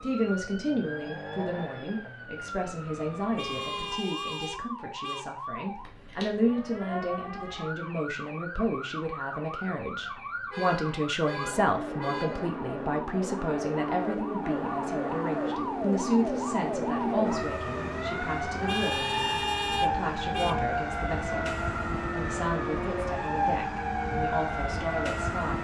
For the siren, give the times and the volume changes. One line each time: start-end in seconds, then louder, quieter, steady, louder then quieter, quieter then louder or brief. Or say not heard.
0.0-25.6 louder.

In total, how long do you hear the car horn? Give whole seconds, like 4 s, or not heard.
6 s.